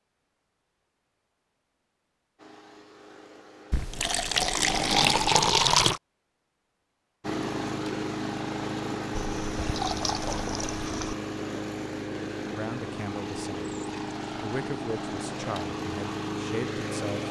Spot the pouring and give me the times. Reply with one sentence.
The pouring can be heard from 3.7 to 6.0 s and from 9.4 to 11.2 s.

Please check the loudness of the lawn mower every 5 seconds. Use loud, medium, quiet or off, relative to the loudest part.
medium, loud, loud, loud.